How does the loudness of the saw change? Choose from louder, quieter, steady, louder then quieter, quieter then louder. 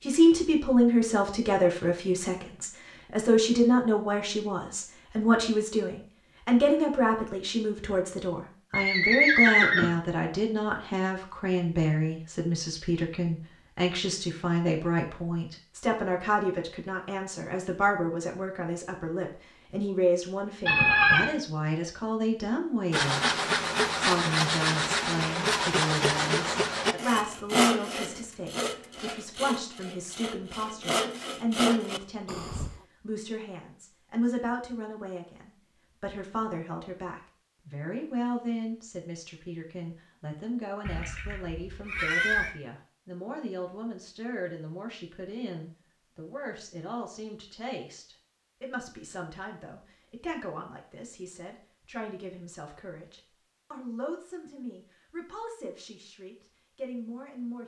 quieter then louder.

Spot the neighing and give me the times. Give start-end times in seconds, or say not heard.
8.7-9.9, 20.6-21.3, 40.9-42.5.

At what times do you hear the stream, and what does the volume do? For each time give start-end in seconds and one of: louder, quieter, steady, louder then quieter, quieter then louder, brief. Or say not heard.
not heard.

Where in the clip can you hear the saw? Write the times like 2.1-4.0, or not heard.
22.9-32.8.